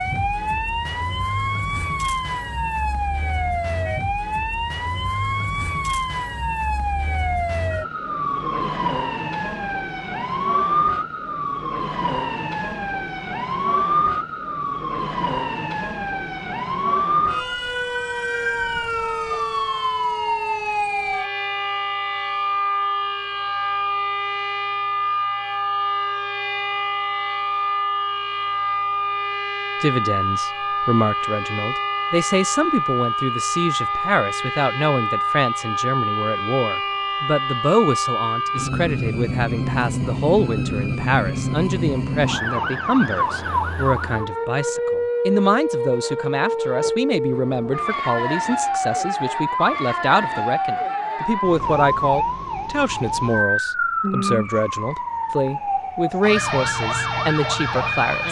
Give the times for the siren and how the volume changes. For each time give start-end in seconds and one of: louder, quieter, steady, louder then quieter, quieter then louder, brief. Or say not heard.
0.0-58.2 steady.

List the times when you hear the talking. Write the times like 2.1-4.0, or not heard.
29.8-58.2.